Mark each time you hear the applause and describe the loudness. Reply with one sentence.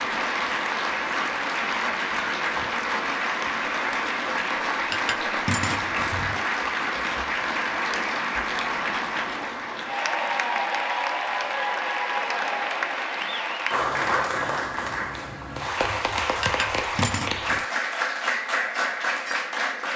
You can hear the applause from 0.0 to 19.9 s, at a steady volume.